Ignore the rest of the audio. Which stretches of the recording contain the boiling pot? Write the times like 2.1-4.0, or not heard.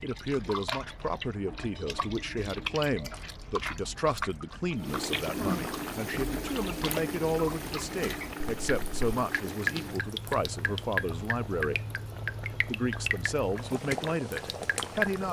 4.8-15.2.